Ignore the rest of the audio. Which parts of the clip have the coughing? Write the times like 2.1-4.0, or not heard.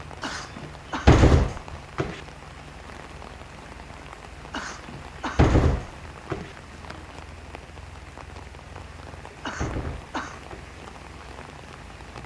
0.2-1.1, 4.5-5.5, 9.4-10.4.